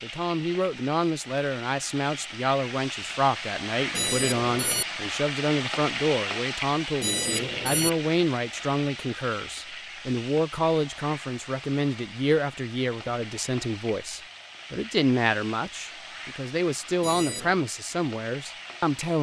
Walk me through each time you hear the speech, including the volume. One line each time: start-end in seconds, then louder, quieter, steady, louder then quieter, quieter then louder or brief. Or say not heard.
0.0-19.1 steady.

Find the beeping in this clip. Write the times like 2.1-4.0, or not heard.
3.9-4.8, 7.0-7.9, 17.0-17.6.